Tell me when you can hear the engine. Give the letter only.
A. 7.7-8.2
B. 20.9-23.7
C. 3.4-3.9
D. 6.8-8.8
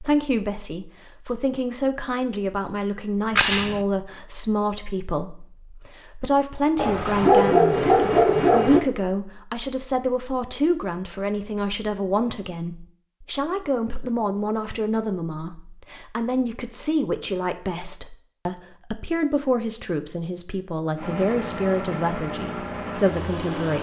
B.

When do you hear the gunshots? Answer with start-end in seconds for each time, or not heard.
3.4-3.9.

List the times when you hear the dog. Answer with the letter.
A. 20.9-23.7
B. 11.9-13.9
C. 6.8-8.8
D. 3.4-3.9
C.